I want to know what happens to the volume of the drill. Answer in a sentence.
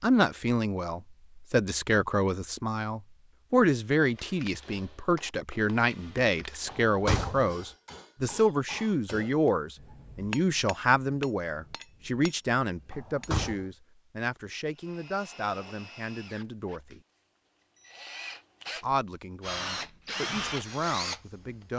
The volume of the drill goes down, then up.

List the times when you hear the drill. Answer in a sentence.
You can hear the drill from 14.7 to 21.7 s.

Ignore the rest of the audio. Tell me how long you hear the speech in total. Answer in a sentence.
The speech can be heard for 20 seconds in total.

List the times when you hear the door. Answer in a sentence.
The door can be heard from 6.7 to 7.5 s and from 12.9 to 13.7 s.